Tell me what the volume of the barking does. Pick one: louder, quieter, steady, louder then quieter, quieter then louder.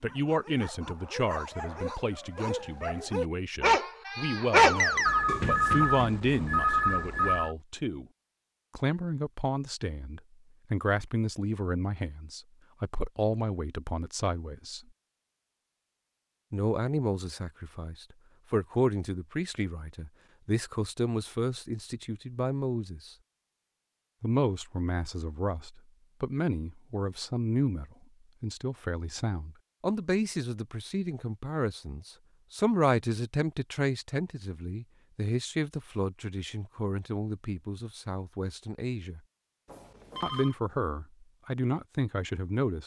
louder.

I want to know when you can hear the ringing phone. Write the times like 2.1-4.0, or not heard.
5.0-7.5, 39.6-40.5.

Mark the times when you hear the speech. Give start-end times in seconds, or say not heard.
0.0-8.1, 8.8-14.8, 16.5-23.1, 24.2-39.2, 40.2-42.8.